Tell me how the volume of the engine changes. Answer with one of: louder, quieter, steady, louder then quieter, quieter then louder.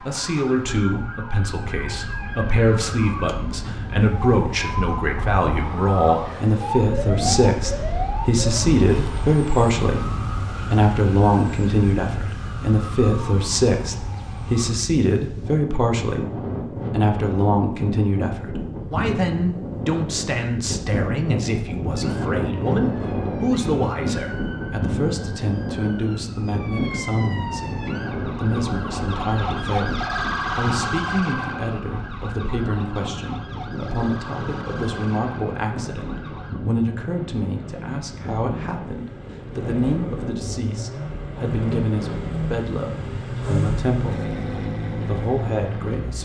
louder.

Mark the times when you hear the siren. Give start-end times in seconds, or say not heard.
0.0-14.8, 21.9-36.6.